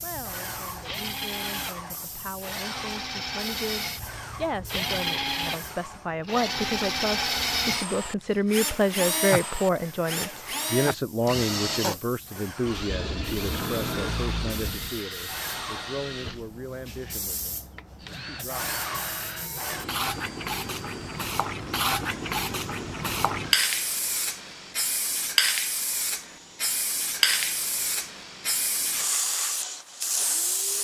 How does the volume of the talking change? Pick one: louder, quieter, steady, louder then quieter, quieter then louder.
louder then quieter.